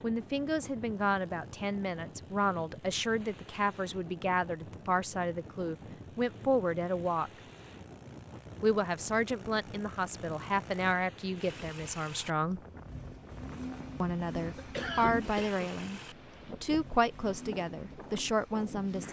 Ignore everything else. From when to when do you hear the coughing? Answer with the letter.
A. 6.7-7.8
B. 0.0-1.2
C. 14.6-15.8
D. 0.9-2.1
C.